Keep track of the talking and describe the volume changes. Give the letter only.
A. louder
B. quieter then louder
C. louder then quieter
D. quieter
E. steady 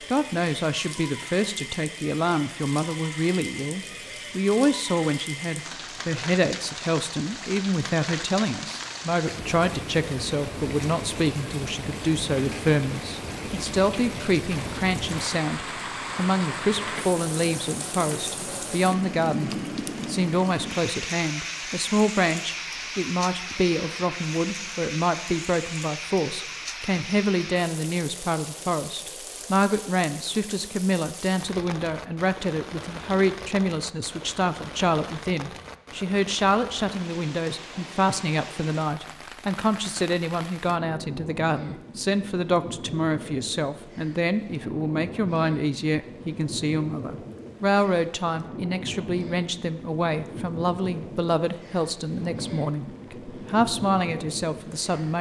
E.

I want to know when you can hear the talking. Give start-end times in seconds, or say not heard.
0.1-55.1.